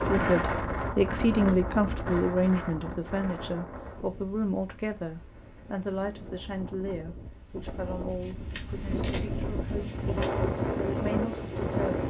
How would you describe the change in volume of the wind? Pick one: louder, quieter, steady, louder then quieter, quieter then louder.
quieter then louder.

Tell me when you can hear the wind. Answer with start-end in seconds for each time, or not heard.
0.0-12.0.